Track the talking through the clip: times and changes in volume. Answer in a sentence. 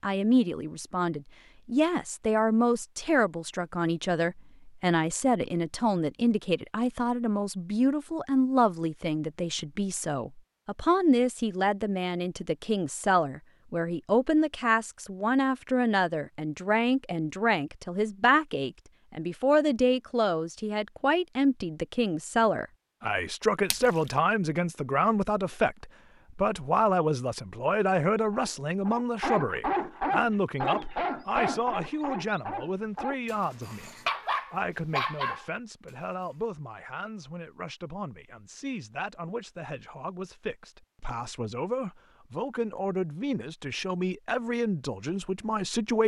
You can hear the talking from 0.0 to 46.0 s, getting quieter.